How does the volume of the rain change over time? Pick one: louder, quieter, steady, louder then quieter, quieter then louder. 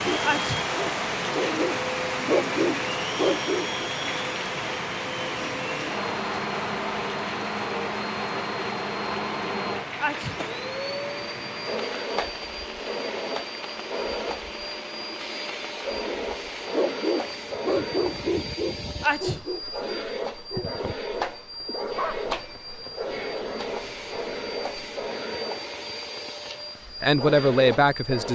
quieter.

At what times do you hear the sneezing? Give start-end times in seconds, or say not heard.
0.2-0.7, 9.9-10.4, 19.0-19.4.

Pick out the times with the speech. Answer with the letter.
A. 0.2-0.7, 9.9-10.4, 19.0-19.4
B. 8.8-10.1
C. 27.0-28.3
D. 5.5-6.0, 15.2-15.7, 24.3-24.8
C.